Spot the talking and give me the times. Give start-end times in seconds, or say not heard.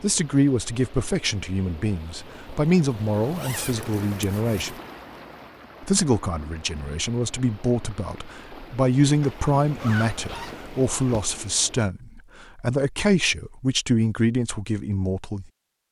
0.0-4.8, 5.8-15.4.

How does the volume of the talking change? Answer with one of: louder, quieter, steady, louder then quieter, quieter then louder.
steady.